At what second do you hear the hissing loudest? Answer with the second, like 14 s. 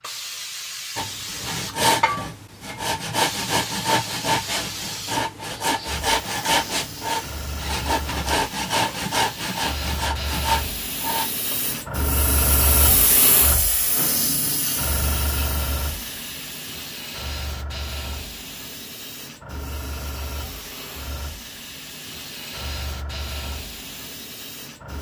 13 s.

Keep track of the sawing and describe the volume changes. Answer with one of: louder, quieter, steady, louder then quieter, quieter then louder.
steady.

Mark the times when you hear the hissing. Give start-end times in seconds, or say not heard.
0.0-24.9.